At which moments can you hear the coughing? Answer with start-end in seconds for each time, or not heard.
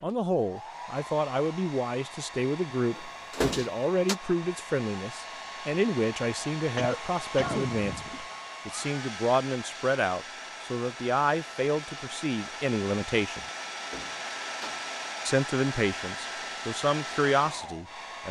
6.6-8.1.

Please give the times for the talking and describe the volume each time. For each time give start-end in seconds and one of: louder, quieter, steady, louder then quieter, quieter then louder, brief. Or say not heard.
0.0-13.4 steady
15.2-18.2 brief.